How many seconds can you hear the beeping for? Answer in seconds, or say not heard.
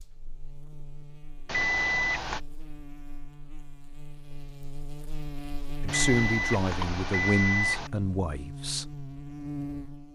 3 s.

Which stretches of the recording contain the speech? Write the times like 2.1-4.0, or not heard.
5.8-8.8.